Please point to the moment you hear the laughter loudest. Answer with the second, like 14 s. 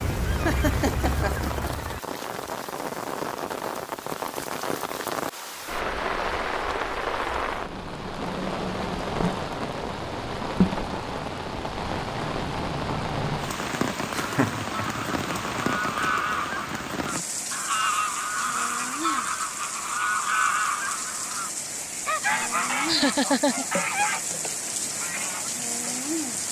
23 s.